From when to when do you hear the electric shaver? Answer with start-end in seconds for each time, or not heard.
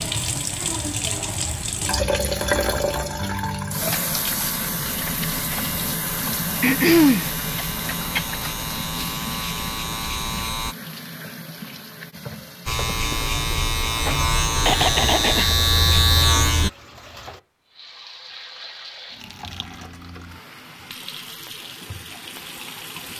3.8-10.8, 12.7-16.7.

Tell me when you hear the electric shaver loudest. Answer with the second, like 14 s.
16 s.